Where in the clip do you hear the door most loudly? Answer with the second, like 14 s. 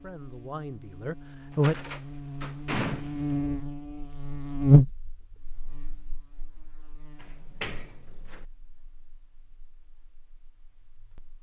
3 s.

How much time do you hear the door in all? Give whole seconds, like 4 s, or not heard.
3 s.